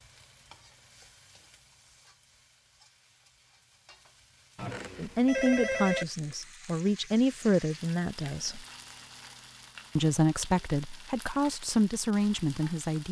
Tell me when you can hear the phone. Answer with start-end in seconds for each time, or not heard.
4.5-6.0.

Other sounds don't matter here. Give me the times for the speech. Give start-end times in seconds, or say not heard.
5.0-8.7, 9.9-13.0.